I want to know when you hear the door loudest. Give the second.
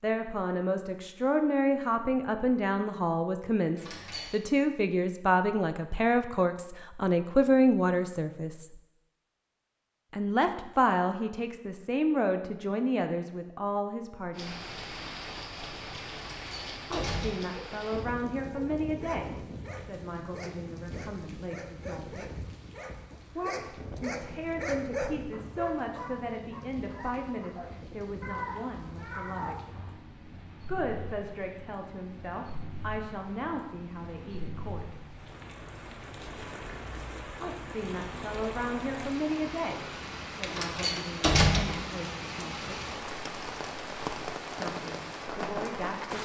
41 s.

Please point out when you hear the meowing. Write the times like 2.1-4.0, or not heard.
28.2-30.0.